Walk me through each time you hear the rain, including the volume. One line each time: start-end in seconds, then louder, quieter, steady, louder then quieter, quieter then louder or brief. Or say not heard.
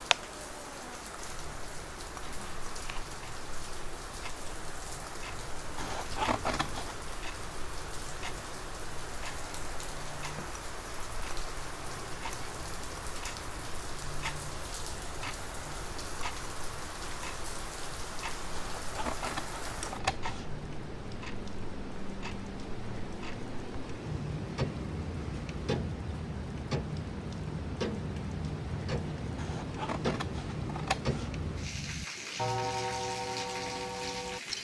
0.0-34.5 steady.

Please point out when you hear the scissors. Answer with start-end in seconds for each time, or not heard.
5.8-7.0, 18.6-20.5, 29.4-31.3.